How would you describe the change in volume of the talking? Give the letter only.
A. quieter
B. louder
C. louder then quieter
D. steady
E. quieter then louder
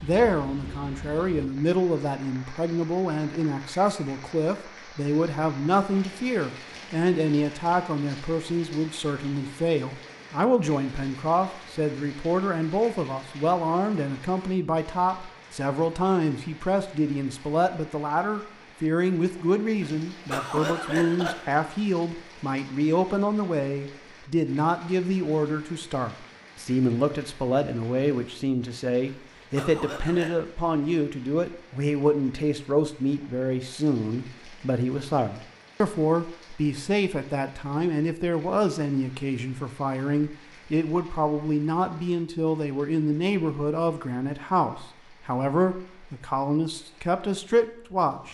D.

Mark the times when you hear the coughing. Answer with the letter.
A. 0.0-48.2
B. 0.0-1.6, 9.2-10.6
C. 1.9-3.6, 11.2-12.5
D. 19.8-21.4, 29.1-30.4
D.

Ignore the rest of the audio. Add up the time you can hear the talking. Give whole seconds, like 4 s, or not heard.
48 s.